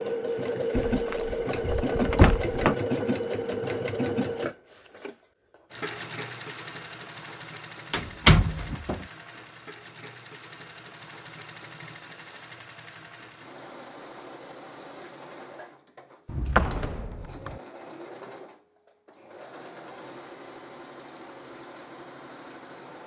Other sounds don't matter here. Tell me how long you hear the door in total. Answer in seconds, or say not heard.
4 s.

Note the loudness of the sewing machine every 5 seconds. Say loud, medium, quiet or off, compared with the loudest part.
loud, quiet, quiet, quiet, quiet.